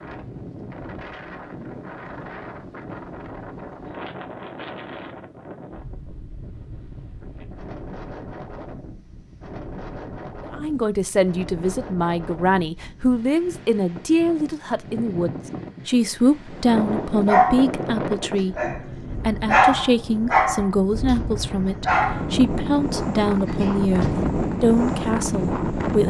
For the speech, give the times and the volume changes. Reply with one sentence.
The speech can be heard from 10.5 to 26.0 s, at a steady volume.